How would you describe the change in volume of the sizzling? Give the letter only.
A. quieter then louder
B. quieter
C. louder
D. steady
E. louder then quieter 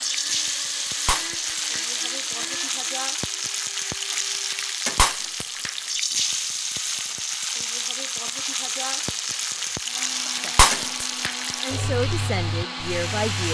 D.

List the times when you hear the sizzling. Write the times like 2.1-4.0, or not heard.
0.0-13.4.